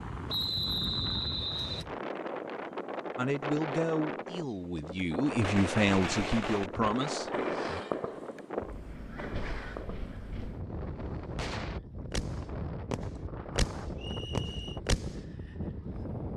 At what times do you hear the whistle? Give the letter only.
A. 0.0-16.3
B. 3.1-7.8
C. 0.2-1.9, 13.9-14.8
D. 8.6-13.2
C.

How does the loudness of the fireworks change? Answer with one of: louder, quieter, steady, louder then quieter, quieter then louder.
quieter then louder.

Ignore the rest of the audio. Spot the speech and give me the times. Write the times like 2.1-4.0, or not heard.
3.1-7.8.